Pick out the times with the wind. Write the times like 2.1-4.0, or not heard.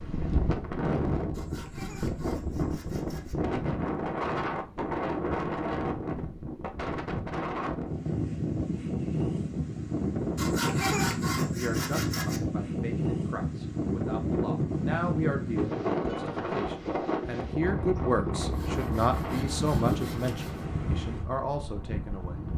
0.0-22.5.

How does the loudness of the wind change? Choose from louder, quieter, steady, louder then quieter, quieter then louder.
steady.